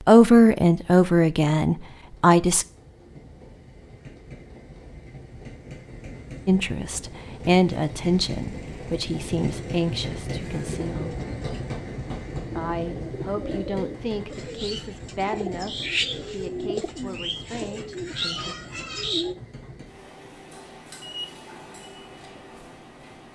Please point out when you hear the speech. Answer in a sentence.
The speech can be heard from 0.1 to 2.6 s, from 6.5 to 11.2 s and from 12.6 to 18.6 s.